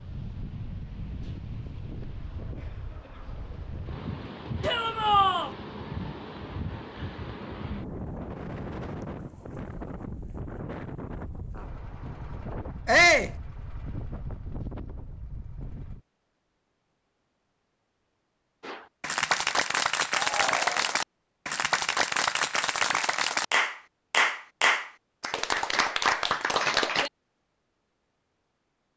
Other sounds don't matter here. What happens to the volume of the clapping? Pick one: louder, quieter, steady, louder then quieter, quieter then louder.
steady.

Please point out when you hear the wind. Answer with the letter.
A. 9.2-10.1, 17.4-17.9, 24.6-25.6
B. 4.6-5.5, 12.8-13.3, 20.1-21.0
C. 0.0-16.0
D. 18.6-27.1
C.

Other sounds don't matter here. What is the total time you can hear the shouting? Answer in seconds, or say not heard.
2 s.